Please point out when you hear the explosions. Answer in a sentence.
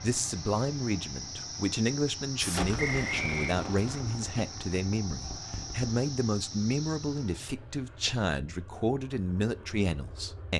The explosions can be heard from 2.4 to 6.0 s.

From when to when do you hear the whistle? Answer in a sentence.
The whistle can be heard from 2.8 to 3.5 s.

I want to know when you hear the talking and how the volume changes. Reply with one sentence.
You can hear the talking from 0.0 to 10.5 s, at a steady volume.